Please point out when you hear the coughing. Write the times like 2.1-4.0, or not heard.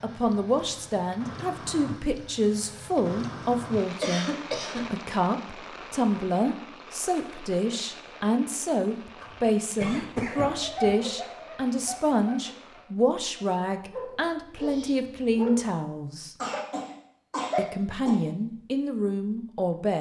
4.0-4.8, 9.2-10.9, 16.4-18.2.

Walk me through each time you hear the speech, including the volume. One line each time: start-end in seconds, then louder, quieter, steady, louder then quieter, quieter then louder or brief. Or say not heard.
0.0-16.4 steady
17.6-19.9 brief.